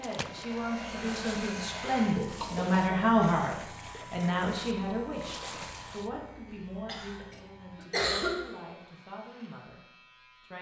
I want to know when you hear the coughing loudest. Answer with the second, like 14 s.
8 s.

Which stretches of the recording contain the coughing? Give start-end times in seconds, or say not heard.
2.4-3.1, 6.8-8.4.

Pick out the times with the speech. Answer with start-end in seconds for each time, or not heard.
0.0-10.5.